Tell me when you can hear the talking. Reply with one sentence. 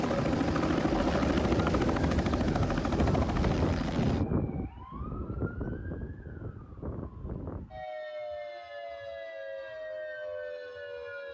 The talking can't be heard in this clip.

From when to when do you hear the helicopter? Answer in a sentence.
You can hear the helicopter from 0.0 to 4.2 s.